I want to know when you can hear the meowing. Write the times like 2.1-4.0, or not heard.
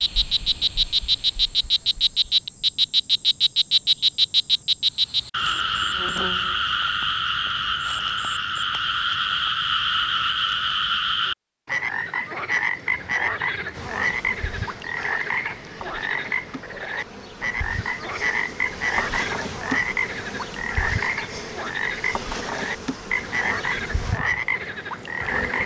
not heard.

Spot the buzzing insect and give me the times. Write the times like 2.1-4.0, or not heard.
13.7-25.6.